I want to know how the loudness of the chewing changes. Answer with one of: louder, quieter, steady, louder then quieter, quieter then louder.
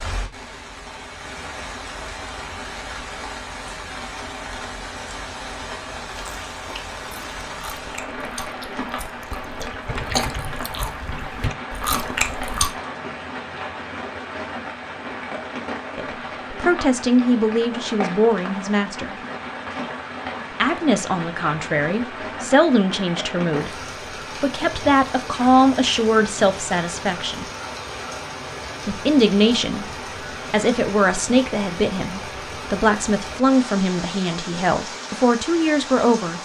louder.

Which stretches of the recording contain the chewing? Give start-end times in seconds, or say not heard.
6.0-12.8.